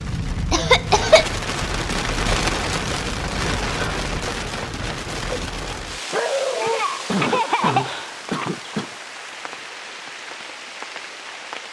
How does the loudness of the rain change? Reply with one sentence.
The volume of the rain goes down.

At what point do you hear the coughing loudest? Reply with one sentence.
The loudest moment of the coughing is at 1 second.